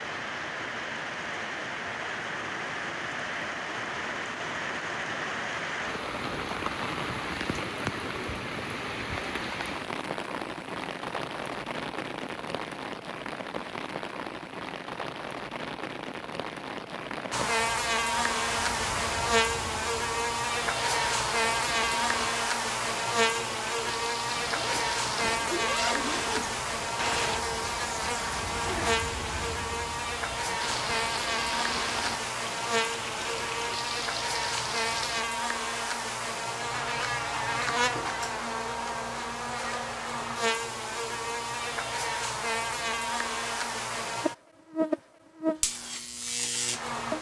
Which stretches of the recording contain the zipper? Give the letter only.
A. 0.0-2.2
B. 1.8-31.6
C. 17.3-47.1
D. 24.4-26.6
D.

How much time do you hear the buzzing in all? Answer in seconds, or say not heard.
30 s.